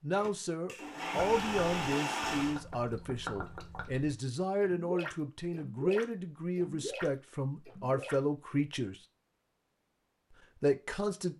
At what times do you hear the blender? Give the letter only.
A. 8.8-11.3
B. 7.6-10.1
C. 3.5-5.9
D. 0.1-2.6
D.